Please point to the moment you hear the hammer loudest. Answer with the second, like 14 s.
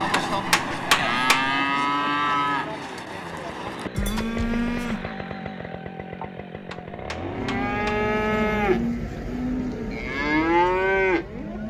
1 s.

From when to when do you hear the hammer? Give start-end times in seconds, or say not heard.
0.1-1.5, 6.6-8.1.